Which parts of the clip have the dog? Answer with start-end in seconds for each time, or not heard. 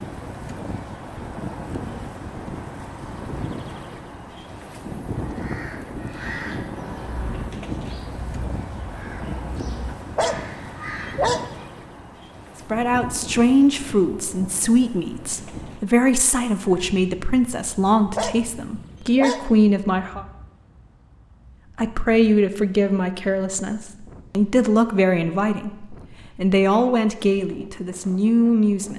9.9-11.5, 17.9-19.5.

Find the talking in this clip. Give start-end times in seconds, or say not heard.
12.7-20.2, 21.8-28.9.